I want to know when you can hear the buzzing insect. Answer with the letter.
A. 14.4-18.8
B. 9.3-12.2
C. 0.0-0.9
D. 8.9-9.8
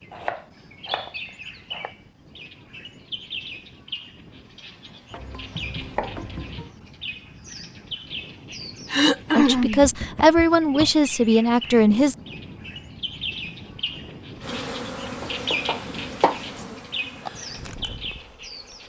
A.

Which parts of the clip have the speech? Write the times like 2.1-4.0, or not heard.
9.3-12.2.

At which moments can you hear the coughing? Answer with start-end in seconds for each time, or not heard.
8.9-9.8.